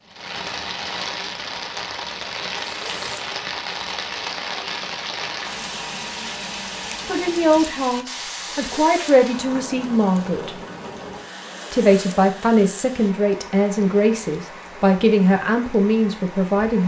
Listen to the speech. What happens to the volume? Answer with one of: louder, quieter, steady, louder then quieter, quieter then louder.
steady.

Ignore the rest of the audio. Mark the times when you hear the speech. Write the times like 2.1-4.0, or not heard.
7.0-10.6, 11.7-16.8.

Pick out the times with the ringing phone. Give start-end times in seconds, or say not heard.
not heard.